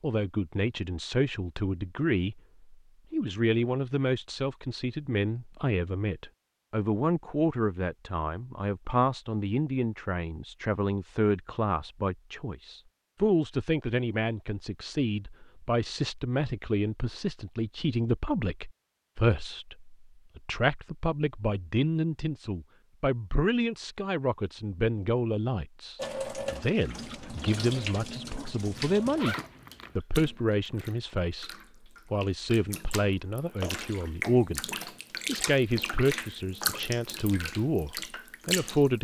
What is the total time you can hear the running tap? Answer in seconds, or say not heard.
13 s.